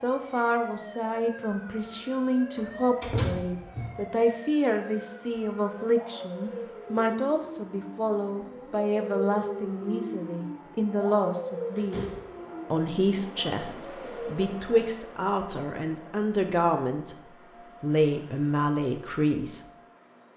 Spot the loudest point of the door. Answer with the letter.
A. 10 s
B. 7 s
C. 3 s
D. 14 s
C.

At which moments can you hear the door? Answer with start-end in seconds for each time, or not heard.
2.5-4.0, 11.8-12.3.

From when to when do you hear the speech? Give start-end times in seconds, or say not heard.
0.0-12.1, 12.7-17.2, 17.8-19.6.